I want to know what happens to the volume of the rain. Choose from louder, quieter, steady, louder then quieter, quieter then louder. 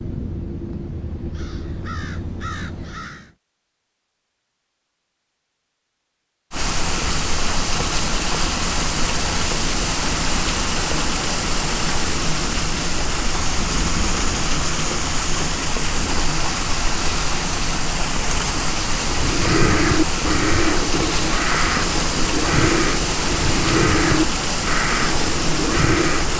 steady.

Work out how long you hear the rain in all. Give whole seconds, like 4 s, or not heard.
20 s.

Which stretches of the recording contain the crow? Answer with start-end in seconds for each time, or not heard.
0.0-3.3, 19.1-26.3.